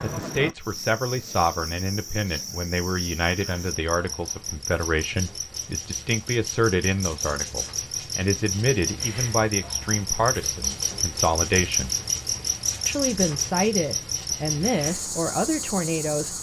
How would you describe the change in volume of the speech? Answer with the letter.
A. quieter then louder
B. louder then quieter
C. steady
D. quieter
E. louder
C.